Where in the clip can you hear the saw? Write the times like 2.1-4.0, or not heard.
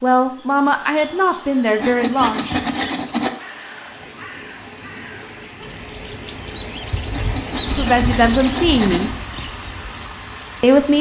1.8-3.3, 7.1-9.2.